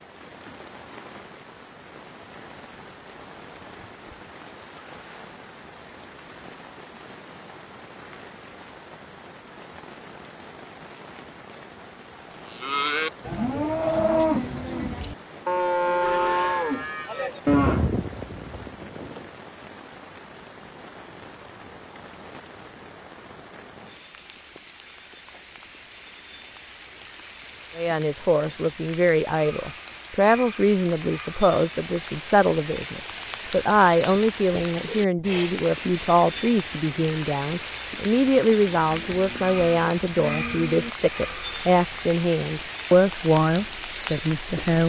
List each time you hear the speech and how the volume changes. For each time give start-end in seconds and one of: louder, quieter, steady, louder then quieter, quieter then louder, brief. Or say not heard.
27.8-44.8 steady.